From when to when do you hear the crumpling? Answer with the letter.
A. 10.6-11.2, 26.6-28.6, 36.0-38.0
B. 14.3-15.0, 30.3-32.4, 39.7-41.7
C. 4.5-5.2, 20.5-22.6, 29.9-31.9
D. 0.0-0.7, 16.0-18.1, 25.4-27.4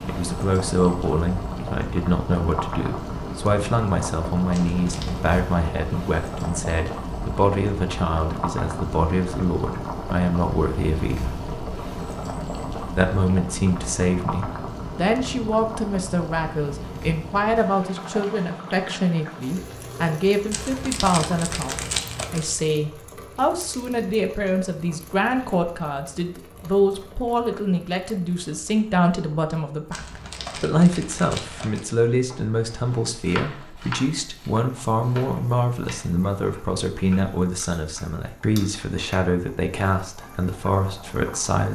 C.